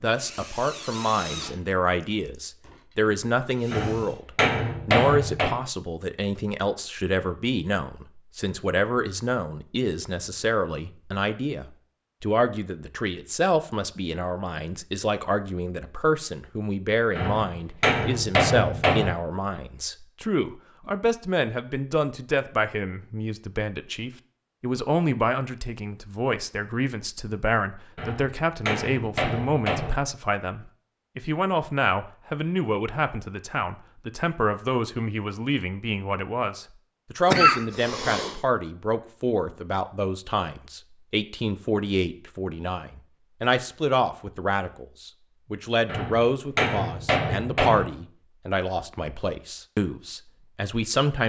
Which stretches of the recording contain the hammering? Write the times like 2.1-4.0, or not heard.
3.7-5.6, 17.1-19.1, 27.9-29.9, 45.9-47.9.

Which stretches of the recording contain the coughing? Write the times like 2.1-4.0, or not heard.
37.2-38.4.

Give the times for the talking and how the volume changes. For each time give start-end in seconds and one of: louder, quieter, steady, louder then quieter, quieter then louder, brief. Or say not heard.
0.0-51.2 steady.